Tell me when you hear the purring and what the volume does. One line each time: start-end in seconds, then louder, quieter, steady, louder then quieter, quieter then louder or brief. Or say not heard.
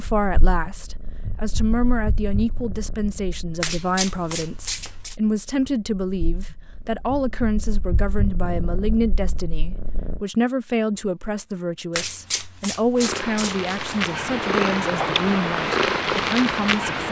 0.0-10.2 quieter then louder
12.9-17.0 louder.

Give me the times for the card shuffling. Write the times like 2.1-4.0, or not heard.
3.6-5.2, 11.9-14.2.